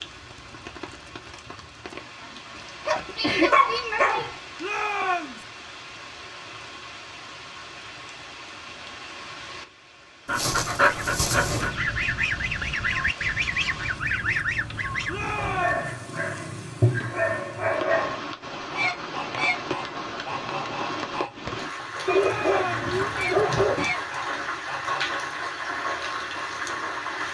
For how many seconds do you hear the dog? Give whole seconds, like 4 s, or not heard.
8 s.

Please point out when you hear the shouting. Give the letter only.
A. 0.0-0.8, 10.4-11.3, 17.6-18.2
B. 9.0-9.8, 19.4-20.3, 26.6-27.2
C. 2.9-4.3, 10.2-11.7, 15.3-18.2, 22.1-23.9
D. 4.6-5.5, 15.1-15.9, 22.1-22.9
D.